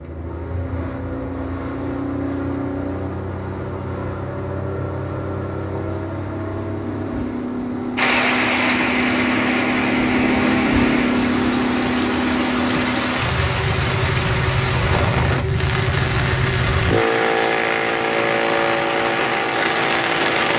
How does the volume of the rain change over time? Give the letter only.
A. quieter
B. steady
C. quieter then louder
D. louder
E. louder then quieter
B.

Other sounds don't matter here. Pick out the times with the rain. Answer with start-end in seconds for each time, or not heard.
8.0-20.5.